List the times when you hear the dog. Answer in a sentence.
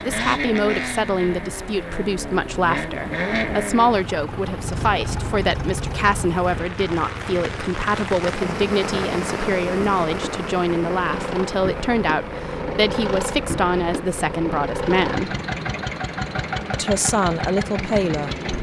You can't hear the dog here.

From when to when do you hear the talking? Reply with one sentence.
You can hear the talking from 0.0 to 15.4 s and from 16.7 to 18.3 s.